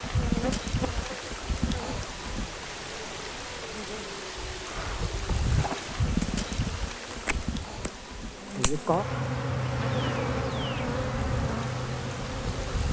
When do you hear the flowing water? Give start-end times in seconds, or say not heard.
0.0-12.8.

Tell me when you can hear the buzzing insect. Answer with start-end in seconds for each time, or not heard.
0.0-12.8.